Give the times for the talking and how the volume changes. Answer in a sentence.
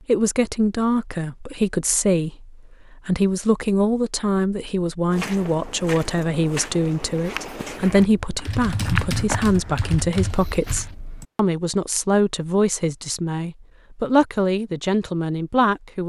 You can hear the talking from 0.1 to 16.0 s, at a steady volume.